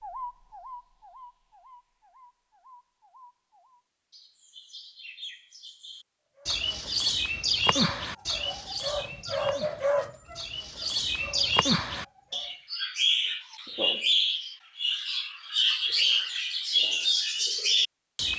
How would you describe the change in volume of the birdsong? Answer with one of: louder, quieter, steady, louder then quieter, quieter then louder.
louder.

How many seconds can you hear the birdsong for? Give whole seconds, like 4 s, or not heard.
18 s.